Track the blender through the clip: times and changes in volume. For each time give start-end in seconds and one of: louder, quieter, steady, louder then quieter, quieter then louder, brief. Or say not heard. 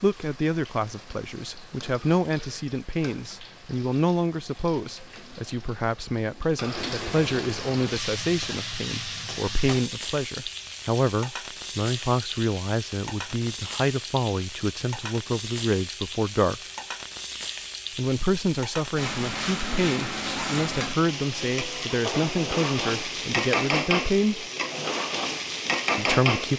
not heard.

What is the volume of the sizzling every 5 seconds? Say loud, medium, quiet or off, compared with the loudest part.
quiet, medium, medium, medium, loud, loud.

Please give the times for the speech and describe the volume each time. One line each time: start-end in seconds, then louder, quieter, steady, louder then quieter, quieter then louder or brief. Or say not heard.
0.0-16.6 steady
17.9-24.4 steady
25.9-26.5 brief.